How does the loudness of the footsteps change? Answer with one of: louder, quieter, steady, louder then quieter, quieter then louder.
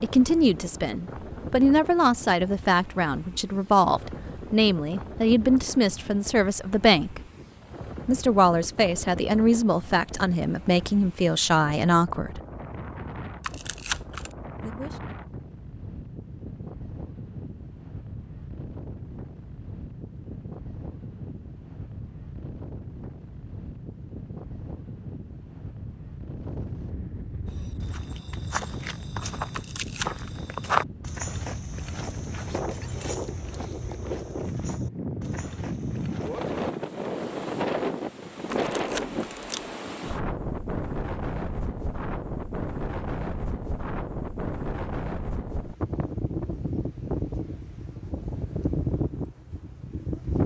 louder then quieter.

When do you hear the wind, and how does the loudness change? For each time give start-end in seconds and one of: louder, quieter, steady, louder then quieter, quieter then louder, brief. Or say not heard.
0.0-50.4 louder.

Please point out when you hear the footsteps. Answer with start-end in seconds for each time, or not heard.
27.4-36.6.